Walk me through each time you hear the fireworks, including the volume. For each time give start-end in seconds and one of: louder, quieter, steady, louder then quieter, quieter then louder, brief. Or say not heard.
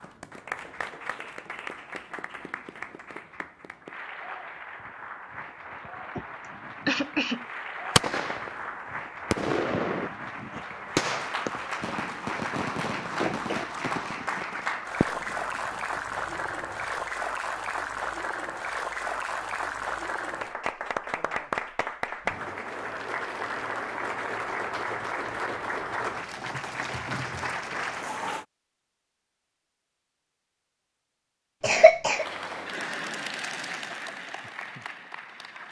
8.0-10.1 brief
10.9-17.1 quieter.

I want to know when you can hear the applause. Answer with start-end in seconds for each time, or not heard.
0.0-28.4, 32.1-35.6.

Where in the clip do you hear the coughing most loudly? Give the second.
32 s.